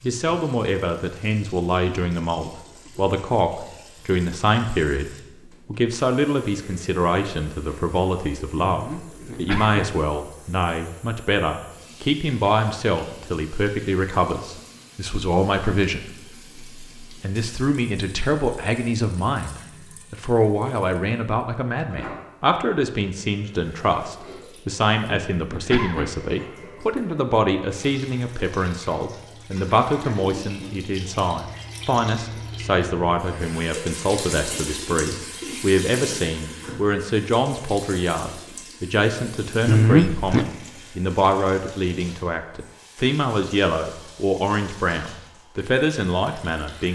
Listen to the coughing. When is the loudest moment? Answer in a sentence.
The volume of the coughing peaks at 40 seconds.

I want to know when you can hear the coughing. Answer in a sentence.
The coughing can be heard from 8.7 to 10.0 s, from 25.1 to 26.2 s and from 39.6 to 40.5 s.